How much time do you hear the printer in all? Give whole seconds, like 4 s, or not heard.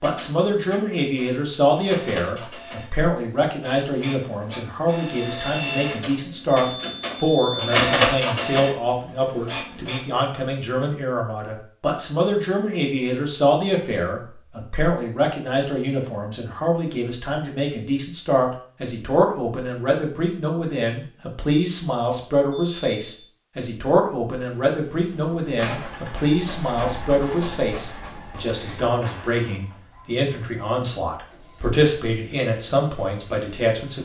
20 s.